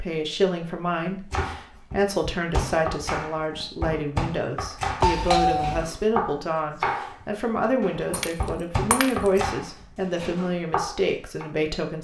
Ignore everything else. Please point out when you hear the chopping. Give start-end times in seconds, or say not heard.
1.3-11.4.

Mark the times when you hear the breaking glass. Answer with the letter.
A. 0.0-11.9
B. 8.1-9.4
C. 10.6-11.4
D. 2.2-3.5
B.